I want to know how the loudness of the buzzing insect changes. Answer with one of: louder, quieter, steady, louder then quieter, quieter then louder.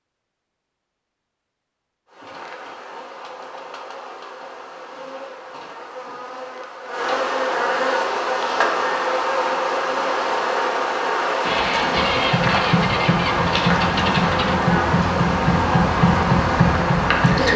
louder.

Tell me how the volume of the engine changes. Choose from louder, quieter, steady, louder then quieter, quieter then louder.
steady.